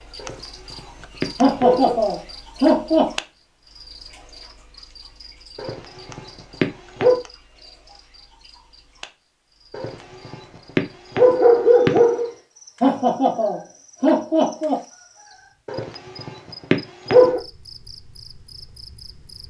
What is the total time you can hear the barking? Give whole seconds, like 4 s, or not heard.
8 s.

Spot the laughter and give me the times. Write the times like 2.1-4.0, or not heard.
1.4-3.1, 12.8-14.8.